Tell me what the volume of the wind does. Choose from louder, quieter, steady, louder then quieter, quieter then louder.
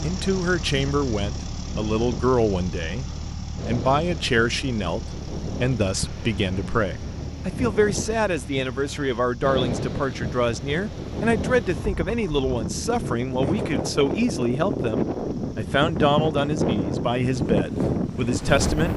louder.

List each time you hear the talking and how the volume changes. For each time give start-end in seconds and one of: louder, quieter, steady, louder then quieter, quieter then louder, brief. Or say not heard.
0.0-18.9 steady.